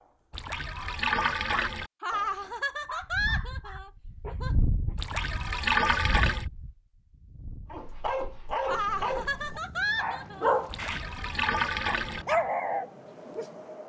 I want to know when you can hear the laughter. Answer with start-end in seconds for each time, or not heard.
2.0-4.5, 8.7-10.5.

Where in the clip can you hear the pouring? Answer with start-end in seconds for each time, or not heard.
0.3-1.9, 5.0-6.5, 10.7-12.2.